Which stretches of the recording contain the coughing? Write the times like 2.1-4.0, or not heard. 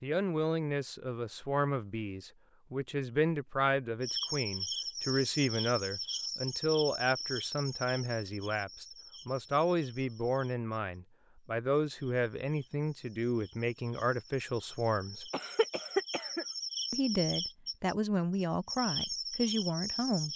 15.3-16.4.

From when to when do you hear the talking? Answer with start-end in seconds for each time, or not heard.
0.0-15.3, 16.9-20.3.